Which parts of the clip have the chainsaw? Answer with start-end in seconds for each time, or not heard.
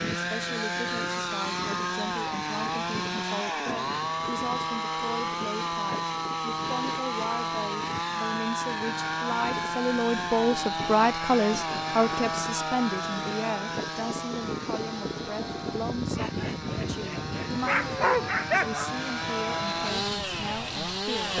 0.0-21.3.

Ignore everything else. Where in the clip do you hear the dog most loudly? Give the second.
18 s.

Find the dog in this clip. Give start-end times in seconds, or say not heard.
16.1-18.9.